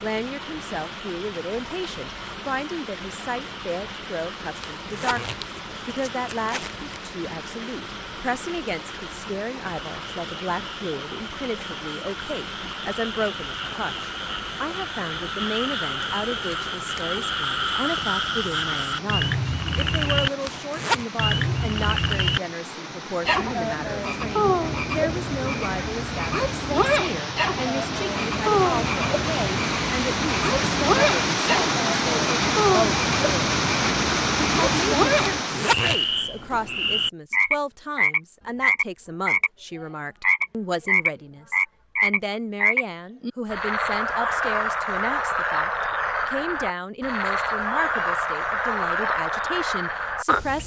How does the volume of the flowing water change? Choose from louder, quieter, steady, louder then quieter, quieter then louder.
louder.